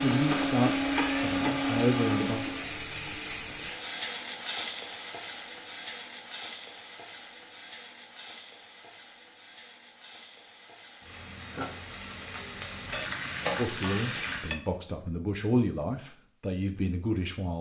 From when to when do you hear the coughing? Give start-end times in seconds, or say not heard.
not heard.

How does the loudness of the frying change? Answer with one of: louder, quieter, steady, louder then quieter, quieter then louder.
quieter then louder.